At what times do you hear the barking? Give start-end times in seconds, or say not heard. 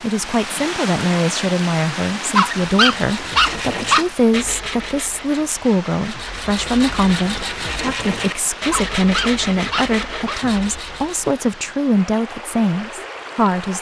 2.3-4.1, 8.7-10.4.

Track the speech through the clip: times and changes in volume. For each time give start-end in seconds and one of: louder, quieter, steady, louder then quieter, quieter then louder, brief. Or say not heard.
0.0-13.7 steady.